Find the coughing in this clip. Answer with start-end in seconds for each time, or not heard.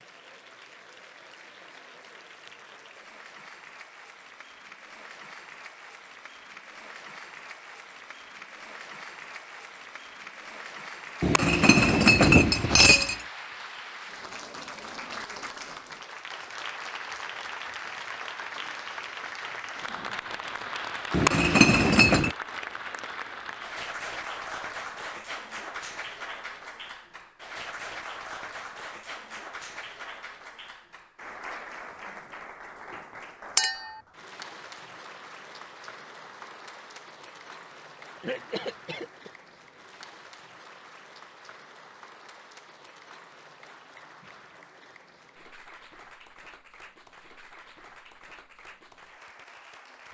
38.1-39.3.